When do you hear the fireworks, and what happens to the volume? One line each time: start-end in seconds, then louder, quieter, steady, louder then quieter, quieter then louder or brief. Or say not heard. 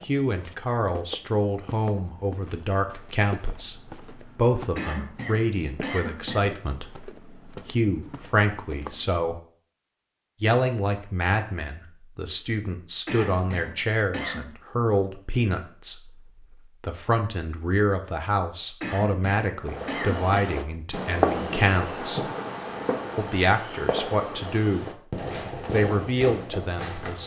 19.6-27.2 quieter.